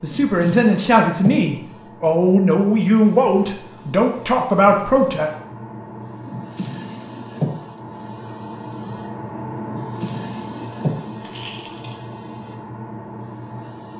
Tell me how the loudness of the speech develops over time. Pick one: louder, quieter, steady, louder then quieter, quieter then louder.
steady.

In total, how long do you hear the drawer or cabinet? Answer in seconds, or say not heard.
4 s.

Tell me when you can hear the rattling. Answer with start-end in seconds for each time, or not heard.
11.2-11.9.